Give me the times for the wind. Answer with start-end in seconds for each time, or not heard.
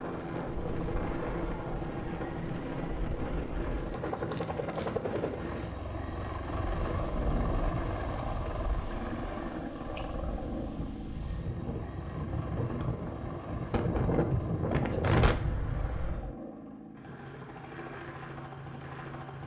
0.0-16.4.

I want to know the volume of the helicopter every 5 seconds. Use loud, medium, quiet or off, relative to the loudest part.
loud, loud, medium, medium.